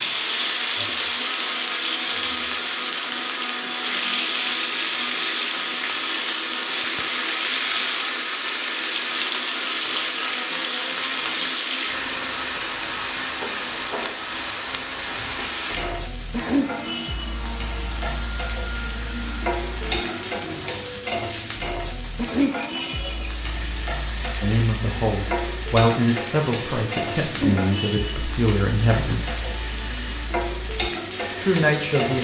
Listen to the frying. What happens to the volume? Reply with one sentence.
The loudness of the frying stays about the same.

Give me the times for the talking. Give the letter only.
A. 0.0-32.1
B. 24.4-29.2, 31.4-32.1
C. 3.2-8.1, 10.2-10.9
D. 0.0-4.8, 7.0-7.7
B.